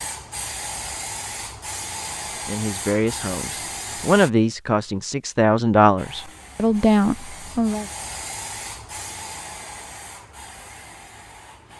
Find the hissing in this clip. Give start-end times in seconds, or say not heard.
0.0-4.3, 6.0-11.7.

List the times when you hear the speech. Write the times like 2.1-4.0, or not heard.
2.5-7.8.